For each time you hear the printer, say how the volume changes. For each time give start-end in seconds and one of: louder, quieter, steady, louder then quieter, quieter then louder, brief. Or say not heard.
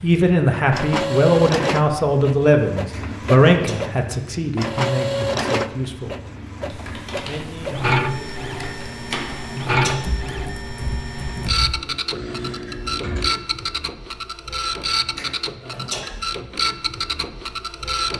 0.0-18.1 steady.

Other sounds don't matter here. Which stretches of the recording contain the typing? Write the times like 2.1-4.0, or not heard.
6.7-13.2.